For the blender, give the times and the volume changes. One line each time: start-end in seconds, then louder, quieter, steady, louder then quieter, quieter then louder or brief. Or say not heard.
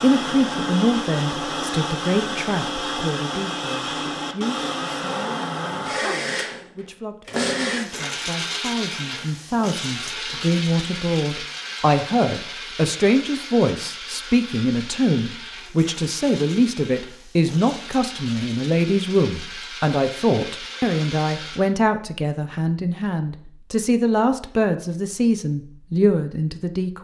0.0-21.7 quieter.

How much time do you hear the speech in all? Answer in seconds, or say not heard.
27 s.